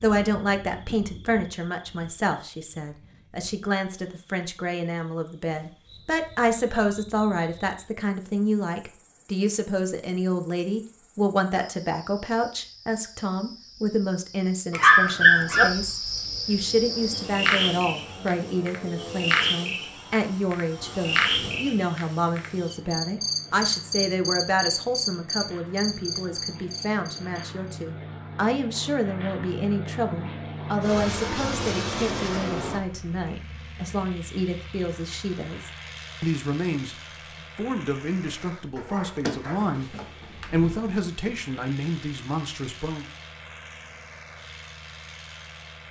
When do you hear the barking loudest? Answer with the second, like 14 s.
15 s.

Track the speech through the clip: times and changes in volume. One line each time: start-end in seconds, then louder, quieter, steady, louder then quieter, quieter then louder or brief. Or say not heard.
0.0-37.0 steady
37.5-43.0 louder then quieter.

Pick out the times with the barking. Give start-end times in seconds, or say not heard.
14.8-15.7, 38.8-40.8.